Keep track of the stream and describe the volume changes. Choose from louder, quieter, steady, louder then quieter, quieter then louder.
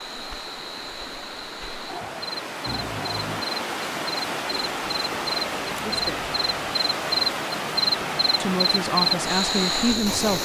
louder.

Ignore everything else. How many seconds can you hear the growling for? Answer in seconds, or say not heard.
2 s.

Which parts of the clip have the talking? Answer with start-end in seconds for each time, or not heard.
5.8-6.3, 8.4-10.4.